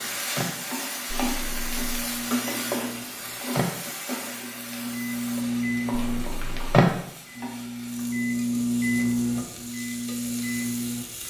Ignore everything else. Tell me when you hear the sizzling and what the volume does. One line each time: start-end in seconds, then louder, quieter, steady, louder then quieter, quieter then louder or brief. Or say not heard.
0.0-11.2 quieter.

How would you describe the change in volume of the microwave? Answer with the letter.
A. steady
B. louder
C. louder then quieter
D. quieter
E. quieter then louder
B.